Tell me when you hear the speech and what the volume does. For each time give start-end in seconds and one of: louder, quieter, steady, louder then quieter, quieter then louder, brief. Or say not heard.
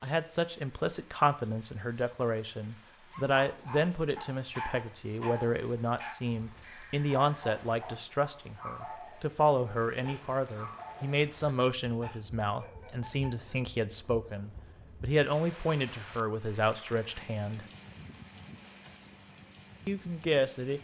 0.0-17.6 steady
19.9-20.7 brief.